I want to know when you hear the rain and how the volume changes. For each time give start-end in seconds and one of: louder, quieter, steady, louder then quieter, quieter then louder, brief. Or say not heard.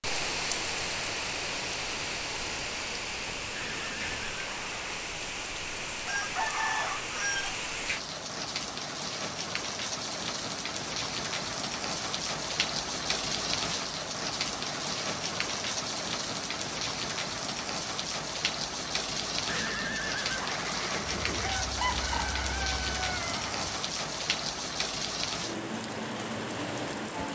0.0-27.3 steady.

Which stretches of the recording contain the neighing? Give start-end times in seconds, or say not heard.
3.5-4.9, 19.4-21.5.